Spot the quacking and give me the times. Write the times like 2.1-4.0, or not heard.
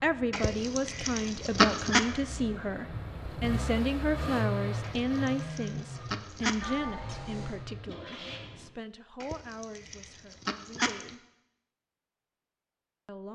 0.3-2.0, 4.8-6.8, 9.2-11.1.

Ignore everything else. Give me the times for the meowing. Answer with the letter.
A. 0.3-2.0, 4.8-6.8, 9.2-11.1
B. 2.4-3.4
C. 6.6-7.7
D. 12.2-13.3
C.